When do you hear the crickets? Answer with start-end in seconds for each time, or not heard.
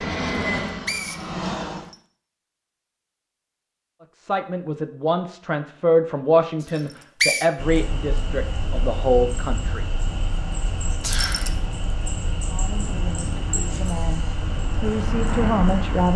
7.5-16.1.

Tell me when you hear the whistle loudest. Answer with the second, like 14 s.
7 s.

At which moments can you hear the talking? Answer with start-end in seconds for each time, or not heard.
4.2-9.8, 12.4-16.1.